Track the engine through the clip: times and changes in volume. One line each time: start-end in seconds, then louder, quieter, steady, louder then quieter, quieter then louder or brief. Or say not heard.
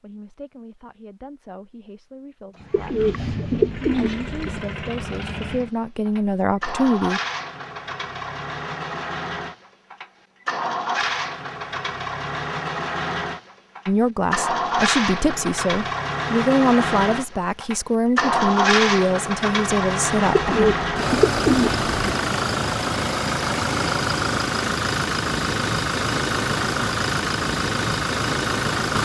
2.5-29.0 louder.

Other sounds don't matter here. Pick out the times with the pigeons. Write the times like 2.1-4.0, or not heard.
2.7-4.6, 20.4-21.9.